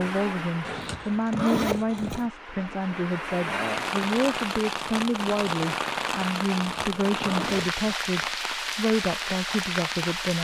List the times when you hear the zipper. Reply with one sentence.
You can hear the zipper from 0.7 to 2.3 s and from 6.5 to 8.0 s.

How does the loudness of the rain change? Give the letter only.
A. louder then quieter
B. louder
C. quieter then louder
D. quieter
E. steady
B.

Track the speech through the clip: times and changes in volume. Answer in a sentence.
You can hear the speech from 0.0 to 10.3 s, at a steady volume.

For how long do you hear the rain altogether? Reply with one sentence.
The rain can be heard for 10 seconds in total.